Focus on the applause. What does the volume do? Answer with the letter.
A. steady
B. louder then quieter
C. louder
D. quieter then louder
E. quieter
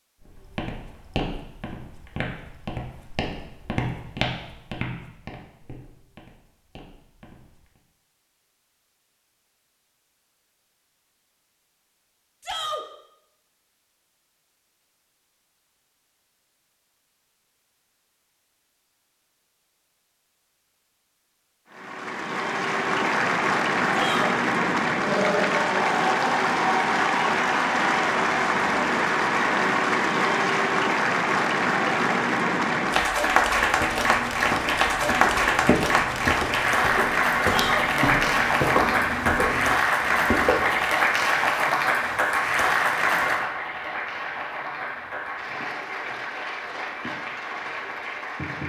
E.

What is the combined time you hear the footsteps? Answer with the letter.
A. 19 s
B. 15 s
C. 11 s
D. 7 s
B.